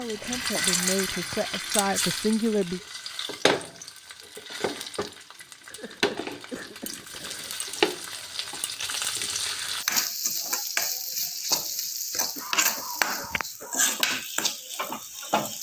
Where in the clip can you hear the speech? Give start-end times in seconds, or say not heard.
0.0-2.8.